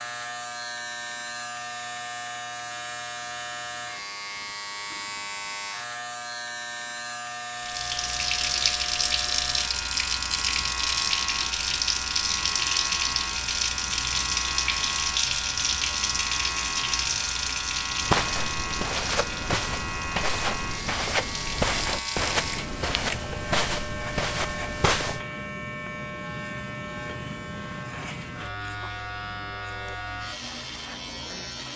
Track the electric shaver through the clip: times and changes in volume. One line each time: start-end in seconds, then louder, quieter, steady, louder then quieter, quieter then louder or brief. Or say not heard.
0.0-31.7 steady.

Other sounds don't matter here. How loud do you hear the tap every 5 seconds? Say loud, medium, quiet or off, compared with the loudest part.
off, loud, loud, loud, medium, off, off.